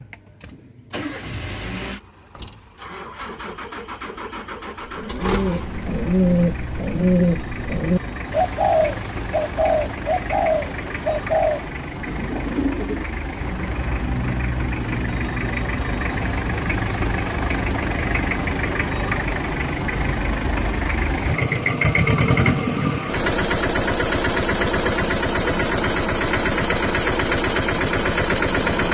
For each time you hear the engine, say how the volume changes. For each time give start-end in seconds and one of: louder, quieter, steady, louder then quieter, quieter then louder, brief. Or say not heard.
0.0-28.8 louder.